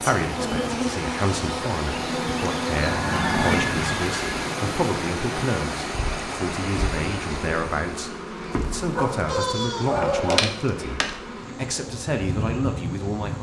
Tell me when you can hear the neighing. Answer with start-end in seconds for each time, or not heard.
2.8-4.5, 9.2-10.1.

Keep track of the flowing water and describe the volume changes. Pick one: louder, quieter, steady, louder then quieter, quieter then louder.
steady.